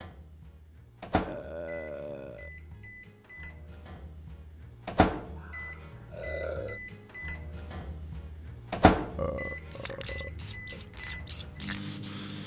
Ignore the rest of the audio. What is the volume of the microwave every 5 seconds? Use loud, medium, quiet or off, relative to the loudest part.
medium, loud, medium.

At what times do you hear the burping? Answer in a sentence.
You can hear the burping from 1.2 to 2.5 s, from 5.3 to 6.8 s and from 9.2 to 10.8 s.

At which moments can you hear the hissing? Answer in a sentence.
The hissing can be heard from 9.5 to 12.4 s.